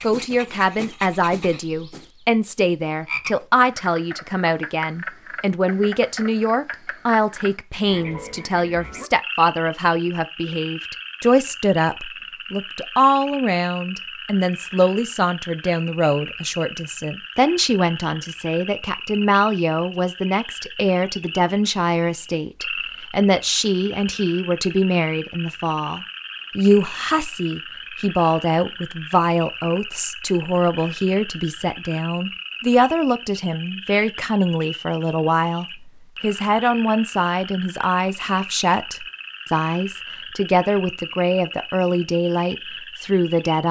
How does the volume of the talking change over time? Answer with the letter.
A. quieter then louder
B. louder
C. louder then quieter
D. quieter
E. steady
E.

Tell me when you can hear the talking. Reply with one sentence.
The talking can be heard from 0.0 to 43.6 s.